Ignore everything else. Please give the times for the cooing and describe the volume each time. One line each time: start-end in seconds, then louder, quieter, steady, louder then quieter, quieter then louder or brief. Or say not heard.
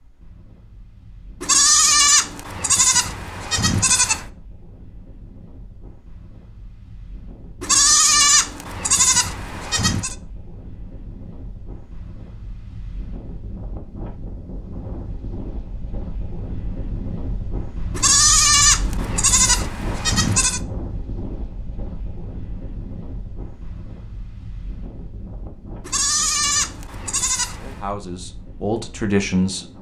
not heard.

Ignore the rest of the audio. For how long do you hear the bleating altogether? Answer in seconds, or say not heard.
10 s.